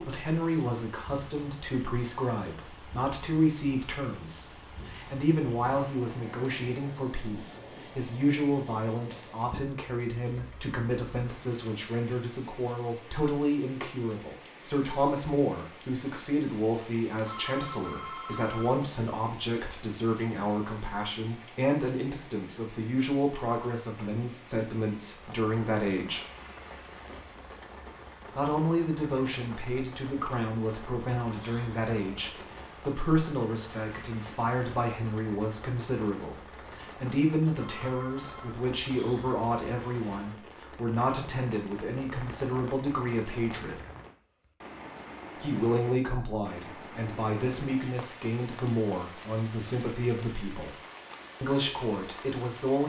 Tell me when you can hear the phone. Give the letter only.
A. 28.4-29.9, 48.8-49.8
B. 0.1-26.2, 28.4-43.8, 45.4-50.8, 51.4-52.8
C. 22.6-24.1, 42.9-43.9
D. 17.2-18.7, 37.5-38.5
D.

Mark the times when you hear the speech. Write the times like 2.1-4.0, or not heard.
0.1-26.2, 28.4-43.8, 45.4-50.8, 51.4-52.8.